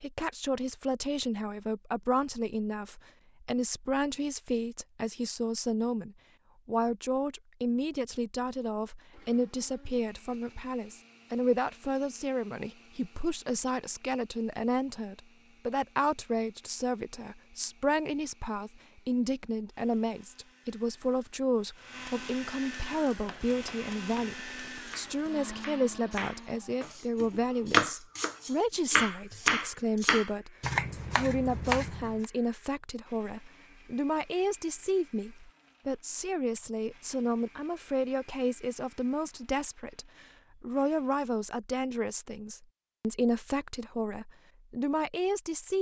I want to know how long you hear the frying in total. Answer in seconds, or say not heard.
not heard.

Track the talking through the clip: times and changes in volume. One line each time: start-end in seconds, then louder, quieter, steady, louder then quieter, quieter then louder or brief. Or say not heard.
0.0-45.7 steady.